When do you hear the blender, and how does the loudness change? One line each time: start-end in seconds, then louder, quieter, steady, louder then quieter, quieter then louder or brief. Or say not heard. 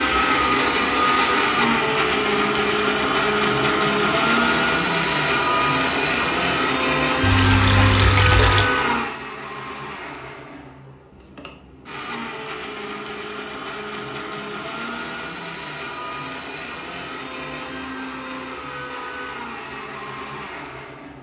0.0-21.1 quieter.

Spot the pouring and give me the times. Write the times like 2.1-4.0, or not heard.
7.2-8.7.